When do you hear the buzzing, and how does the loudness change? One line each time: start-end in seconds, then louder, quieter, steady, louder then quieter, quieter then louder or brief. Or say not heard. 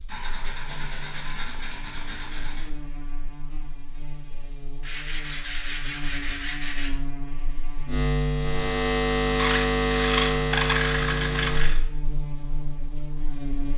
0.0-13.7 louder then quieter.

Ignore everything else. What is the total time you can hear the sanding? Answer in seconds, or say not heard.
7 s.